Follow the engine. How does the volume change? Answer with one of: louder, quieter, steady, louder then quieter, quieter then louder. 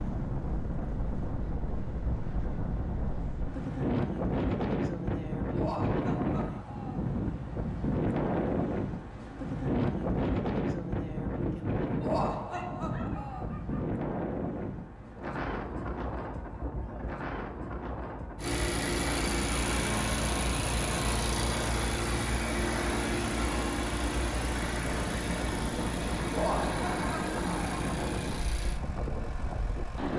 quieter.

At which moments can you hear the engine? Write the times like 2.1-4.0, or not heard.
18.4-30.1.